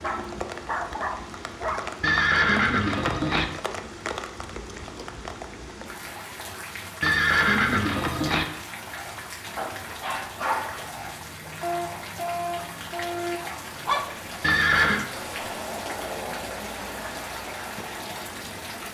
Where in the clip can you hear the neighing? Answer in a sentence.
The neighing can be heard from 2.0 to 3.5 s, from 7.0 to 8.4 s and from 14.4 to 15.1 s.